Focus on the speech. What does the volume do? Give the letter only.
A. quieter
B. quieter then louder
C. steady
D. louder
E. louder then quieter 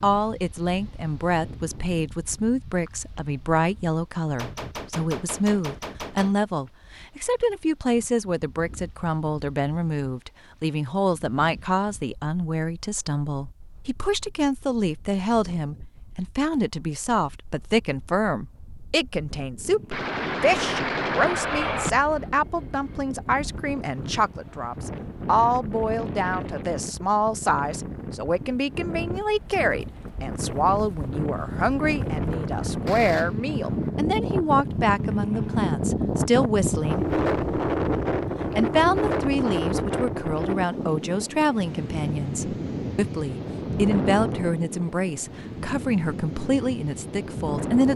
C.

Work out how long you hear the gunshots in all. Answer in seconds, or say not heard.
5 s.